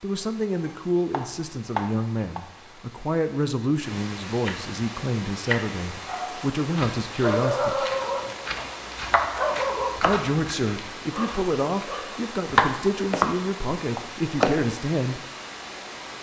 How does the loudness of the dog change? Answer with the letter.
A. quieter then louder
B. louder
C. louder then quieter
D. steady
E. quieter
E.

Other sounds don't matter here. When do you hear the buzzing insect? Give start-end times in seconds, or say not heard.
not heard.